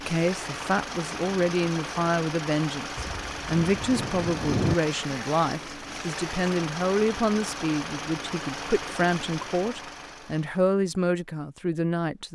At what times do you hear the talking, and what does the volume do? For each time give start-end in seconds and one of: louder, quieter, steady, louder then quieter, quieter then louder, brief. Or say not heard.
0.0-12.3 steady.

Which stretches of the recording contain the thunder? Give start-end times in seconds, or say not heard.
3.0-4.8.